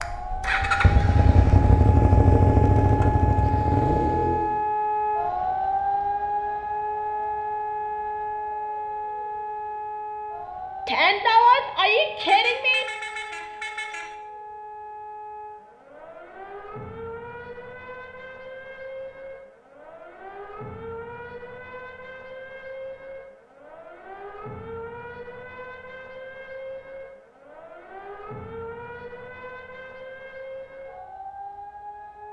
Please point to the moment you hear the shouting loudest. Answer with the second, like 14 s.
11 s.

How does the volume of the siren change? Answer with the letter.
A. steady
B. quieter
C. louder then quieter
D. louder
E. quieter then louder
B.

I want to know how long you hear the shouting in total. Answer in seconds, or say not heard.
2 s.